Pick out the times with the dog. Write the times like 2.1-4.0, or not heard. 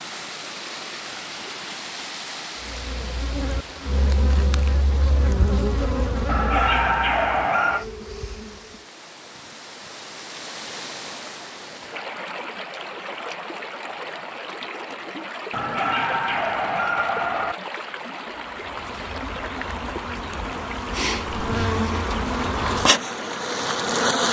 6.2-7.8, 15.5-17.6.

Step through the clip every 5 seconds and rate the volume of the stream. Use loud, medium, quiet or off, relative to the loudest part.
loud, medium, loud, loud, loud.